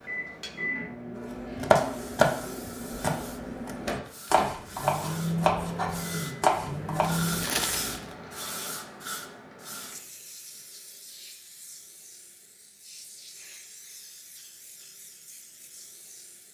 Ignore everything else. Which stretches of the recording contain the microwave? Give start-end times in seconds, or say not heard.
0.0-7.4.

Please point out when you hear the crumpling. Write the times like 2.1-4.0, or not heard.
7.0-8.2.